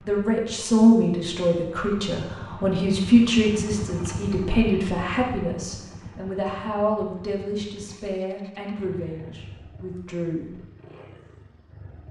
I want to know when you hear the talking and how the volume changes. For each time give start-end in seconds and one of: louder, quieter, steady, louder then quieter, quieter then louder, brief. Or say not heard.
0.1-10.6 quieter.